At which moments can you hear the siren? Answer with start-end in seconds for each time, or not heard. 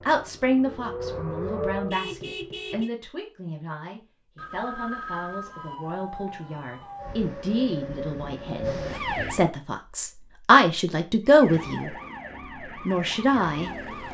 0.0-1.9, 5.5-9.5, 11.2-14.0.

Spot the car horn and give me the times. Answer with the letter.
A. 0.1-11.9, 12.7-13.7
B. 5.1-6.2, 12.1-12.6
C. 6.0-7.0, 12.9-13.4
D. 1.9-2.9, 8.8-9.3
D.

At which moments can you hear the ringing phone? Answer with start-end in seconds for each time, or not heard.
4.3-5.8.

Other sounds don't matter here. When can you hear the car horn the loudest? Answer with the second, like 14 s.
2 s.